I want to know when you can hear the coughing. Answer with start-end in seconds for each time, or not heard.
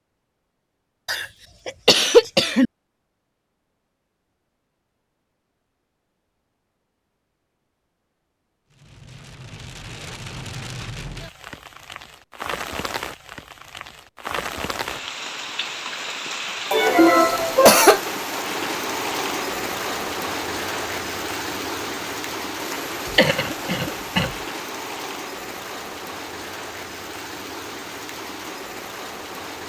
1.1-2.6, 16.7-18.0, 23.1-24.3.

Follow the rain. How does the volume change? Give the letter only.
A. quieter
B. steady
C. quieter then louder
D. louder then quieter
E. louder
D.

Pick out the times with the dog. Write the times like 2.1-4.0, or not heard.
not heard.